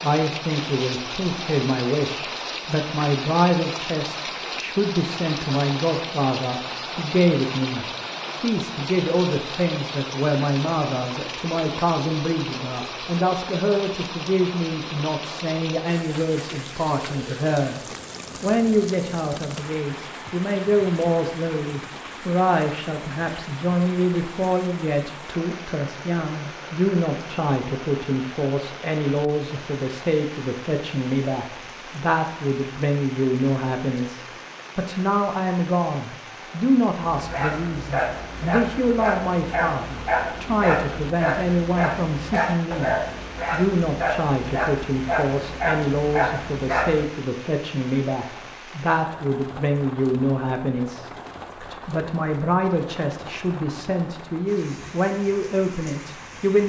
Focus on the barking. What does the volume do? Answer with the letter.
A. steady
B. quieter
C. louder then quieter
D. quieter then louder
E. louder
A.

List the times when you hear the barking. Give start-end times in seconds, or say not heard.
37.1-47.0.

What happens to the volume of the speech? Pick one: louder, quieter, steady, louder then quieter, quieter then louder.
steady.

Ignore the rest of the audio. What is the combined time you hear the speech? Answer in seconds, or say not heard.
56 s.